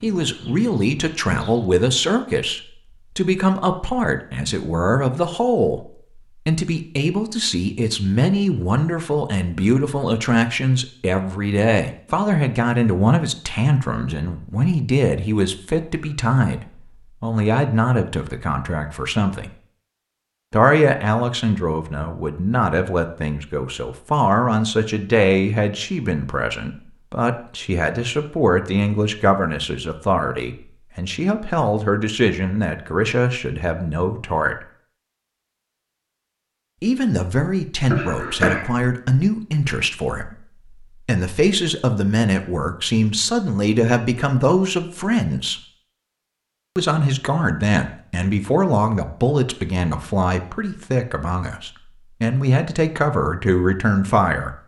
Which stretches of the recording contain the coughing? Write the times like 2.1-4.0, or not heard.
37.9-38.6.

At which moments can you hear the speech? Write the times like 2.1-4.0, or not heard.
0.0-19.5, 20.5-34.5, 36.8-45.6, 46.8-54.5.